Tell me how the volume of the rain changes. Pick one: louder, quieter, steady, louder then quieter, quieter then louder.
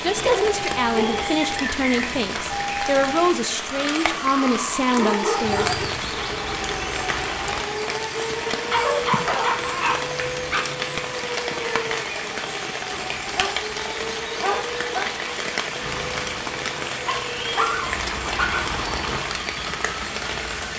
steady.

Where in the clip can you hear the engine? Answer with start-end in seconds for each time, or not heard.
5.4-7.7, 15.8-19.2.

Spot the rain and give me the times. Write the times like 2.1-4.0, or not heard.
0.0-20.7.